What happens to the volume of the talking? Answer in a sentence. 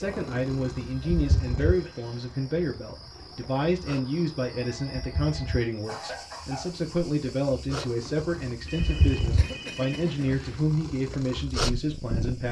The volume of the talking stays about the same.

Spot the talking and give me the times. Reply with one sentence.
The talking can be heard from 0.0 to 12.4 s.